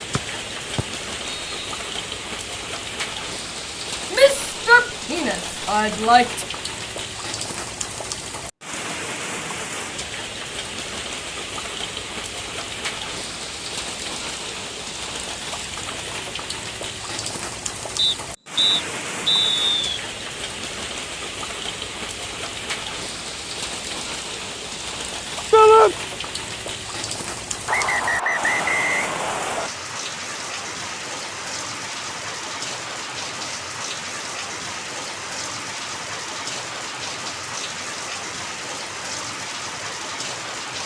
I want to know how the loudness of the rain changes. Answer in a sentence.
The loudness of the rain stays about the same.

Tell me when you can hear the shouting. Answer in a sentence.
The shouting can be heard from 4.1 to 6.5 s and from 25.5 to 25.9 s.